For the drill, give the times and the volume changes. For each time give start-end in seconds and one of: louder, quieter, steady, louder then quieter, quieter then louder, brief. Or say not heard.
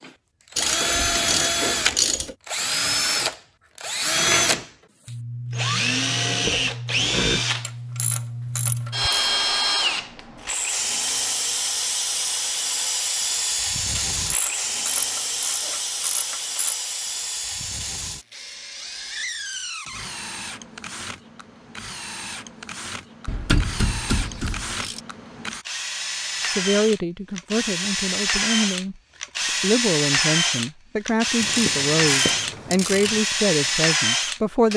0.0-34.7 quieter then louder.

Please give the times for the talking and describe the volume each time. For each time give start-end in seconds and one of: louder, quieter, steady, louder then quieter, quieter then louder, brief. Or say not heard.
26.4-34.7 steady.